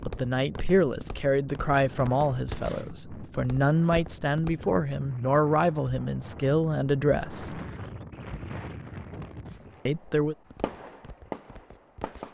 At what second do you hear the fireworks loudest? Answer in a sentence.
The loudest moment of the fireworks is at 11 seconds.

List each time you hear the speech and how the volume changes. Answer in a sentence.
The speech can be heard from 0.0 to 7.6 s, at a steady volume; and briefly from 9.8 to 10.3 s.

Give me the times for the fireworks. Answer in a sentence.
You can hear the fireworks from 9.7 to 12.3 s.